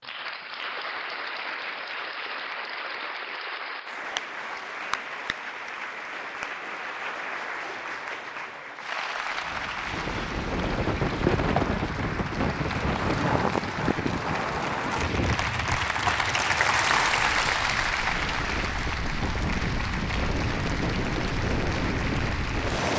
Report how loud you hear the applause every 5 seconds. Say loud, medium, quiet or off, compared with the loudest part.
medium, medium, medium, loud, medium.